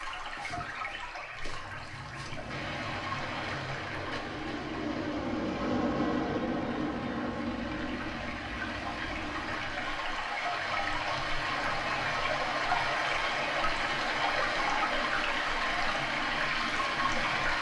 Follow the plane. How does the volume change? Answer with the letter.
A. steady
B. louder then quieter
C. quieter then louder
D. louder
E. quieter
B.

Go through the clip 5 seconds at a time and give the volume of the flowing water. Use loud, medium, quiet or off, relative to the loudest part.
medium, medium, loud, loud.